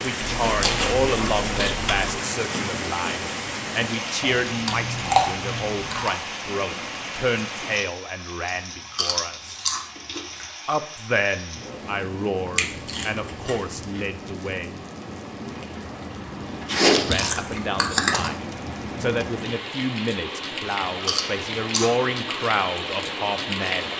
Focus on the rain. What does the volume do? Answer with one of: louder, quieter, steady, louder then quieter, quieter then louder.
quieter then louder.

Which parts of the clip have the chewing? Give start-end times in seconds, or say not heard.
0.2-2.1, 4.5-6.2, 8.9-10.4, 12.6-14.1, 16.6-18.3, 21.0-21.9.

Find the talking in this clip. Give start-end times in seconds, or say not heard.
0.0-9.7, 10.7-14.8, 17.1-23.9.